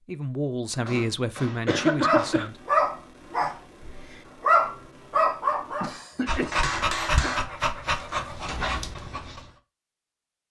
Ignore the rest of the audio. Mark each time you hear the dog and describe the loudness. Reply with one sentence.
The dog can be heard from 2.0 to 9.4 s, getting quieter.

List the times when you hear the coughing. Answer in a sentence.
You can hear the coughing from 1.6 to 2.5 s and from 5.8 to 7.3 s.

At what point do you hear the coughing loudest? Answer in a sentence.
The volume of the coughing peaks at 2 seconds.